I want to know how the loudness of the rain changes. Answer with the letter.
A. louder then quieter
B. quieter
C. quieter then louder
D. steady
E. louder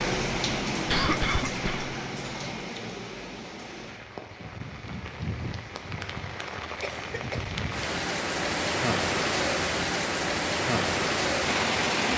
C.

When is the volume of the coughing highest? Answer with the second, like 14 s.
1 s.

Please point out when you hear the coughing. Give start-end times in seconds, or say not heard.
0.8-1.9, 6.8-7.5.